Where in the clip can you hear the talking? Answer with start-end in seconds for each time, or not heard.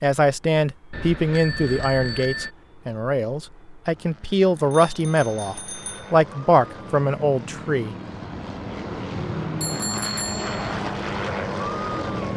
0.0-8.0.